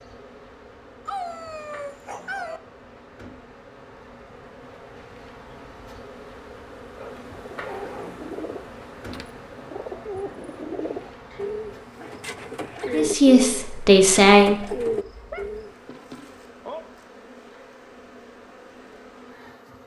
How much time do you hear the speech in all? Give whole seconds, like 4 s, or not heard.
2 s.